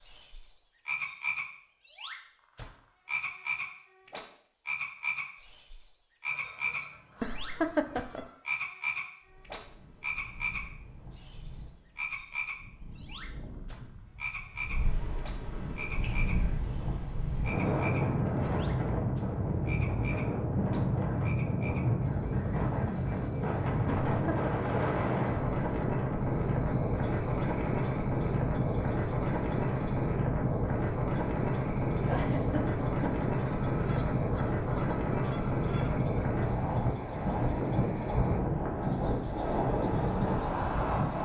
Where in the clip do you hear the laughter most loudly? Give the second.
8 s.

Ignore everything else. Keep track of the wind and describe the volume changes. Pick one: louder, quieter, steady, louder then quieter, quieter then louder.
louder.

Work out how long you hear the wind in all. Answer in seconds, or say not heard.
32 s.